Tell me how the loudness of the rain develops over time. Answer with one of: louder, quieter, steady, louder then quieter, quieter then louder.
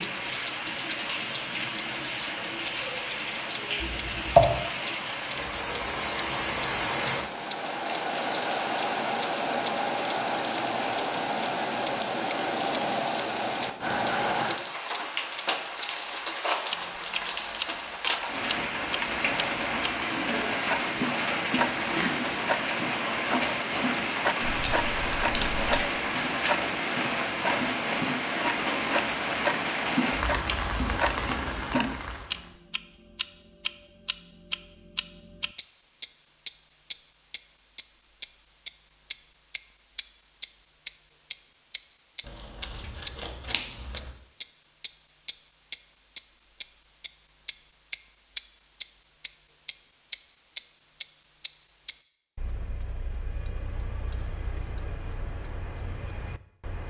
steady.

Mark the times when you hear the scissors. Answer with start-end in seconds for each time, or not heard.
3.8-4.6, 24.4-25.8, 42.2-44.1.